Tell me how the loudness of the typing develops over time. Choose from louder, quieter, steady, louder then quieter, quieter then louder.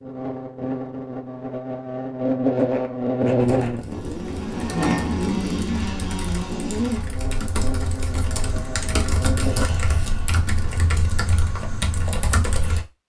louder.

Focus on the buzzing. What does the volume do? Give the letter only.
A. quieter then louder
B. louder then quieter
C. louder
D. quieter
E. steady
B.